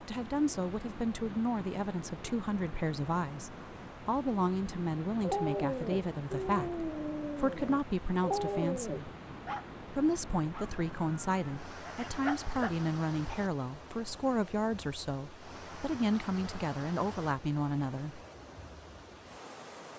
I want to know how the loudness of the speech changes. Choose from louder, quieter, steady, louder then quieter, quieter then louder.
steady.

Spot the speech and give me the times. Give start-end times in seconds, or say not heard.
0.1-9.1, 9.9-18.2.